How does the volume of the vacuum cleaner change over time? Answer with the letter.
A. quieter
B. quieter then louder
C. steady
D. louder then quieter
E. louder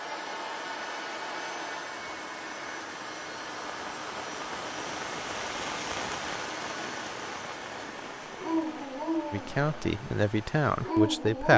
A.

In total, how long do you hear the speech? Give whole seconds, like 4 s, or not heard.
2 s.